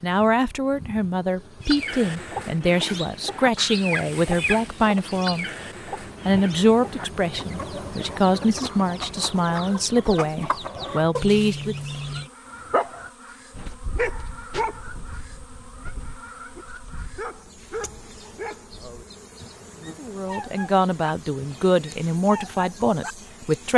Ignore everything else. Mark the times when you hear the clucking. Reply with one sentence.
The clucking can be heard from 1.6 to 12.3 s.